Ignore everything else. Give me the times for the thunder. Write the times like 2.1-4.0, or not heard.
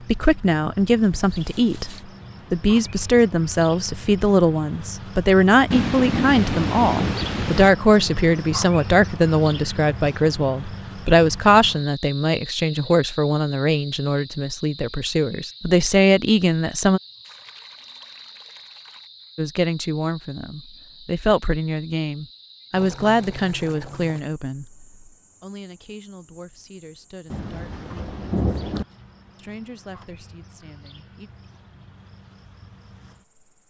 5.7-7.7, 27.3-28.9.